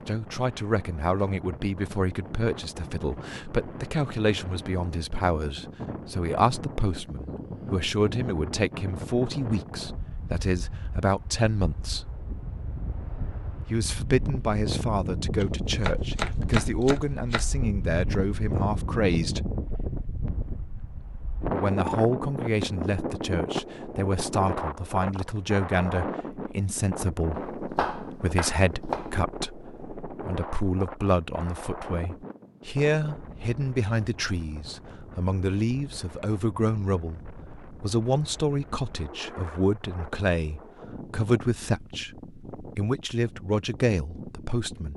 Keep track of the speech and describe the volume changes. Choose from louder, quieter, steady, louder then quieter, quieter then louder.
steady.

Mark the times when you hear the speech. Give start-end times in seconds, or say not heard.
0.1-12.1, 13.6-19.4, 21.5-44.9.